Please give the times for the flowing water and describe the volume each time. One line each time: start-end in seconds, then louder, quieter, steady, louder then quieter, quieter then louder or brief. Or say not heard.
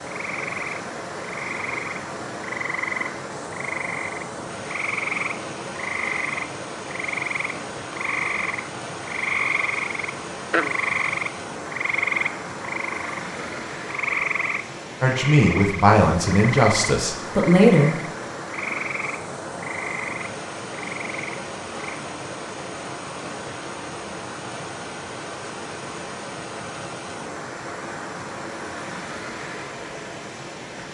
0.0-30.9 steady.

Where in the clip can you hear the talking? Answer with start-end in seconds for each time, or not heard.
15.0-17.9.